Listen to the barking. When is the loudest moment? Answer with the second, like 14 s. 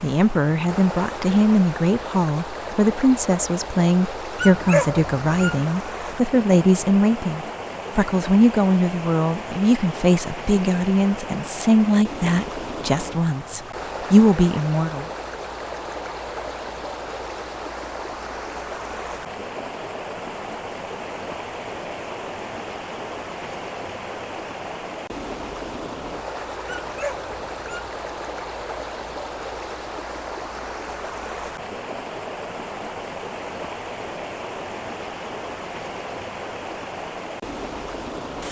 5 s.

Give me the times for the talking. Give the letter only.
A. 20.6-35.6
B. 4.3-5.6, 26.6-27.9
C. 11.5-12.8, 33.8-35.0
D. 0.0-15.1
D.